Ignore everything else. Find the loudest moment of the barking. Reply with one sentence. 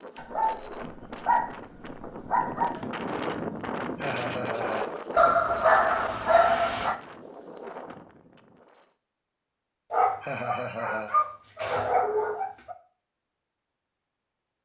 The loudest moment of the barking is at 6 seconds.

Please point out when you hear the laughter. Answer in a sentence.
The laughter can be heard from 4.0 to 4.9 s and from 10.2 to 11.2 s.